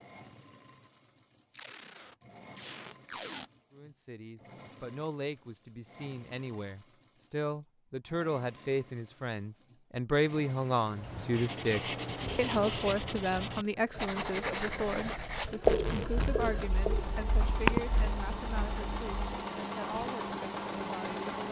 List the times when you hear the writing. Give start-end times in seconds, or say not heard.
10.9-19.2.